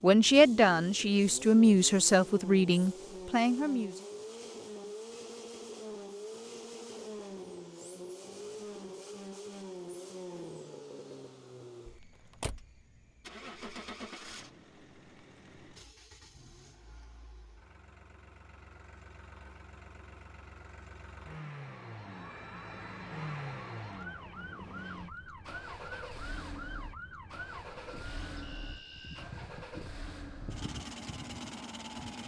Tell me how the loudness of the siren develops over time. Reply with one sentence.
The volume of the siren stays about the same.